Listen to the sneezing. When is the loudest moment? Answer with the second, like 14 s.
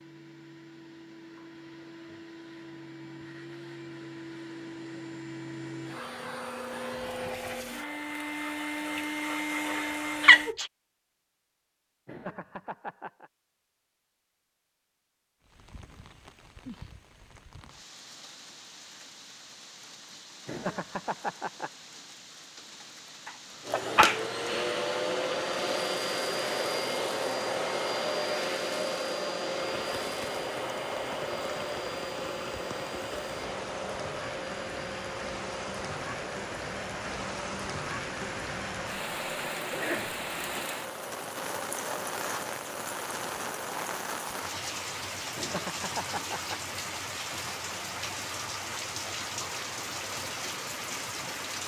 10 s.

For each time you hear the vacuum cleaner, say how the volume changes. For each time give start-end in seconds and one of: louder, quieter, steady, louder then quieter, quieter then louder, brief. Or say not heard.
0.0-10.6 louder
23.6-44.0 quieter.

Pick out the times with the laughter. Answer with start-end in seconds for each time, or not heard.
12.1-13.3, 20.4-21.7, 45.4-46.6.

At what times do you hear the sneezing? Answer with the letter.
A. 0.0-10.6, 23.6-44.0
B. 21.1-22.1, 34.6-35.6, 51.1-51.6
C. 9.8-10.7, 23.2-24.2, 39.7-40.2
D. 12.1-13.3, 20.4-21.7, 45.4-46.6
C.